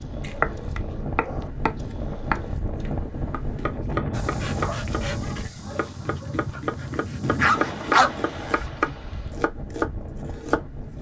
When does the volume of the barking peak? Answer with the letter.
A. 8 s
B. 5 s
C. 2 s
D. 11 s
A.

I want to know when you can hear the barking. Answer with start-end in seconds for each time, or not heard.
0.0-2.6, 4.2-8.7.